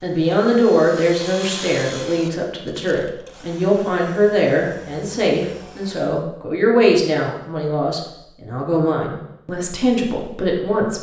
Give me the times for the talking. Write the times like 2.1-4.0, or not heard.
0.0-10.9.